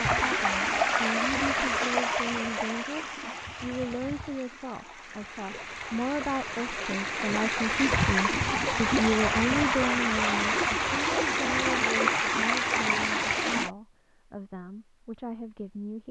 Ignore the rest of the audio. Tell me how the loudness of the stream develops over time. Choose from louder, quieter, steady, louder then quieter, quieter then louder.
quieter then louder.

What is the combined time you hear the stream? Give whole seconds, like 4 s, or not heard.
14 s.